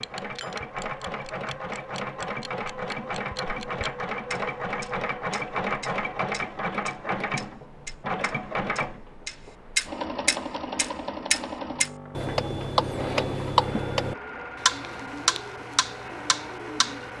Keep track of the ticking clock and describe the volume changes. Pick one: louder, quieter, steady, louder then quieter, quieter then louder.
louder.